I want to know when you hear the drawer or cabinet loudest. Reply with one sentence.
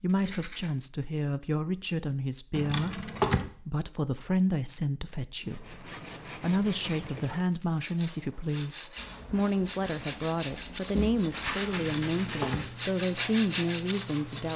The loudest moment of the drawer or cabinet is at 3 seconds.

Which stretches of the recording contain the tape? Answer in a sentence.
You can't hear the tape here.